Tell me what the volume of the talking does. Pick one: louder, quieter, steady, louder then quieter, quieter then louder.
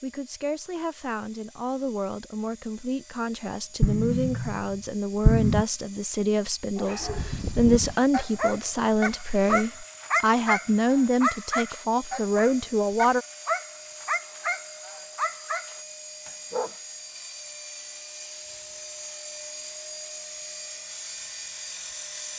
louder.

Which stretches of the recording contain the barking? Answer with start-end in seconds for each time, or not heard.
6.8-16.8.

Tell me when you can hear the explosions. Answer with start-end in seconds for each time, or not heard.
3.8-5.7.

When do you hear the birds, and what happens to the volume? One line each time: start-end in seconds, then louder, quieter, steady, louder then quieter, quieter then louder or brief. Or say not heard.
not heard.